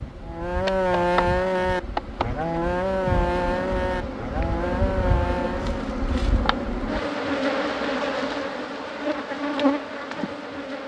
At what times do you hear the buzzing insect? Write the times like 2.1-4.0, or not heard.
0.0-10.8.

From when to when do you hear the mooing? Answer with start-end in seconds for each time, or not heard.
0.2-5.8.